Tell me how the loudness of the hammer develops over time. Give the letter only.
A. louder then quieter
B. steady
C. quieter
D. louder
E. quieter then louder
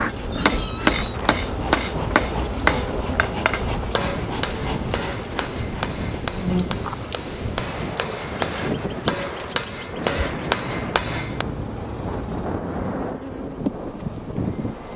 E.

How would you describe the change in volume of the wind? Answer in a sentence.
The loudness of the wind stays about the same.